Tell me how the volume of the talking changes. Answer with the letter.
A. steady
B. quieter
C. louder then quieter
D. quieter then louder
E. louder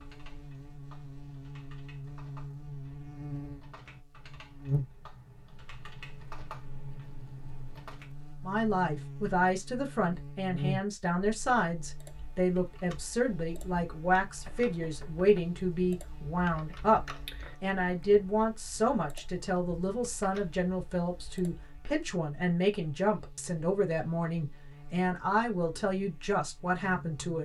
A.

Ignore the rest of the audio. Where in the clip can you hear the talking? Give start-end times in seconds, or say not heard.
8.4-27.4.